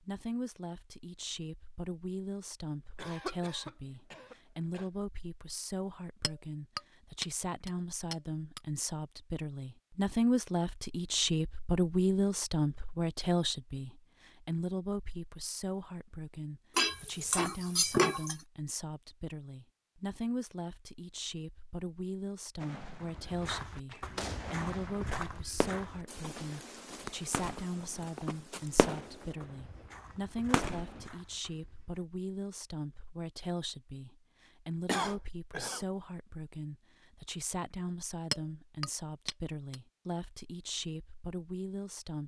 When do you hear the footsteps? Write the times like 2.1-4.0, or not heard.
23.1-32.0.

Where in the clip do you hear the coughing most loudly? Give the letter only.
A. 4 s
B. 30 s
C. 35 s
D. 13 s
C.